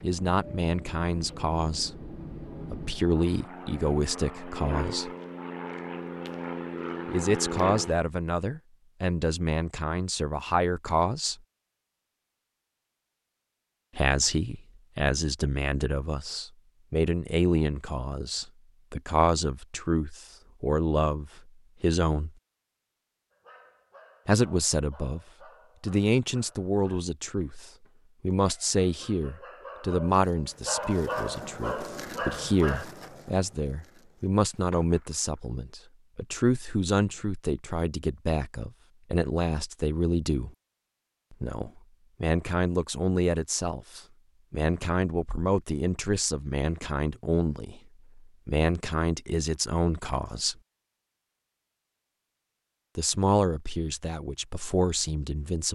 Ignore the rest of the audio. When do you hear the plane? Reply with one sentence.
You can hear the plane from 0.0 to 8.0 s.